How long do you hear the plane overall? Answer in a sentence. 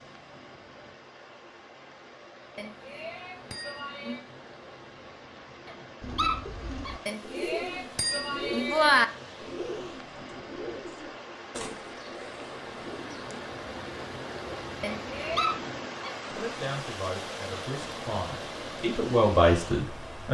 You can't hear the plane here.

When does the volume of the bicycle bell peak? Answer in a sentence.
The loudest moment of the bicycle bell is at 9 seconds.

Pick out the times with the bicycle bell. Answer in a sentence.
You can hear the bicycle bell from 2.5 to 4.2 s, from 7.0 to 9.1 s and from 14.8 to 15.5 s.